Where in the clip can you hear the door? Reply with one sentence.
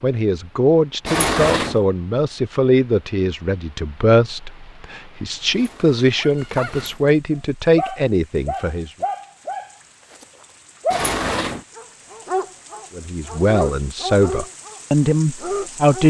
You can hear the door from 1.1 to 1.9 s, from 5.5 to 7.0 s and from 10.9 to 11.7 s.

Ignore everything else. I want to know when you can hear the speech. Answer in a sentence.
The speech can be heard from 0.0 to 8.9 s and from 12.9 to 16.0 s.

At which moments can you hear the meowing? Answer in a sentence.
The meowing can't be heard in this clip.